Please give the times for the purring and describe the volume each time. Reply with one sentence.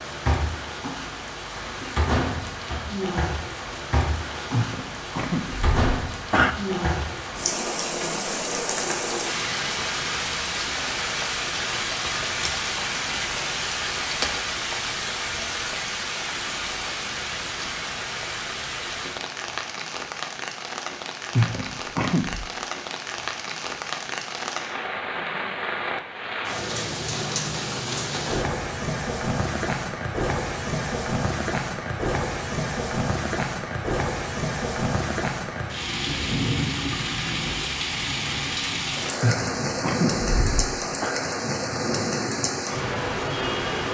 You can't hear the purring here.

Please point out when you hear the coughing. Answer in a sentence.
You can hear the coughing from 4.5 to 6.5 s, from 21.4 to 22.5 s and from 39.2 to 41.1 s.